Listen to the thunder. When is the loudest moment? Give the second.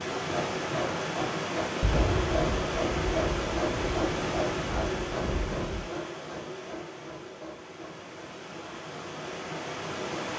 2 s.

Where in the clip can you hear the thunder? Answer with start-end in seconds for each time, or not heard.
1.8-5.9.